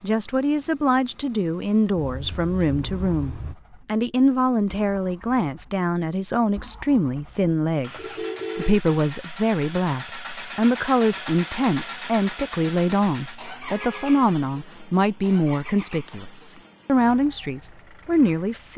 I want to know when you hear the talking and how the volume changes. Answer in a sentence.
You can hear the talking from 0.0 to 18.7 s, at a steady volume.